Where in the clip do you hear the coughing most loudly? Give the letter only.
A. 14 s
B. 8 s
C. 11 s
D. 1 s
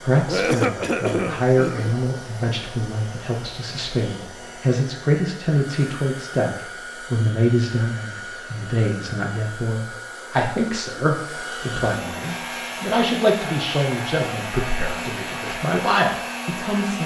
D.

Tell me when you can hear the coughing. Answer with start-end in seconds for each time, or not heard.
0.2-1.9.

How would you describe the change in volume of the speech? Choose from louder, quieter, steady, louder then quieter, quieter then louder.
steady.